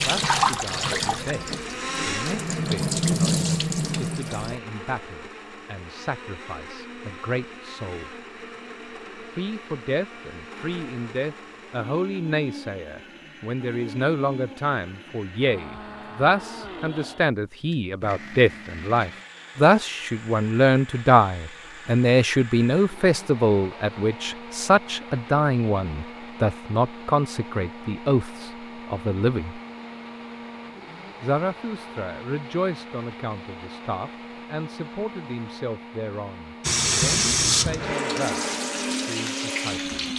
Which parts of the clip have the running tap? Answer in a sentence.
You can hear the running tap from 0.0 to 4.6 s and from 36.6 to 40.1 s.